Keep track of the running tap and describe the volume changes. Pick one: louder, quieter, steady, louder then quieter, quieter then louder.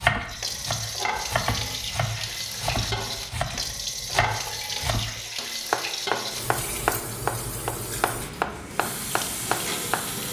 steady.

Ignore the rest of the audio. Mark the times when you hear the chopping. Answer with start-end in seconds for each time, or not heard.
0.0-10.2.